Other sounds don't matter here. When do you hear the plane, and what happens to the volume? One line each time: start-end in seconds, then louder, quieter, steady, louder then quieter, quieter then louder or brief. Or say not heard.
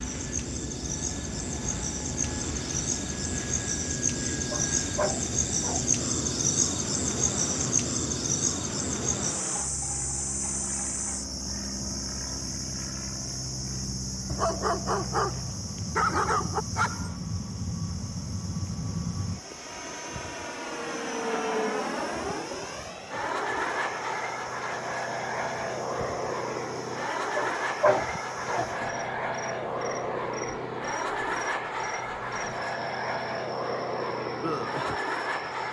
0.0-35.6 louder.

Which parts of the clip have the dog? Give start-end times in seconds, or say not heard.
4.5-5.8, 14.3-17.1, 27.1-28.7.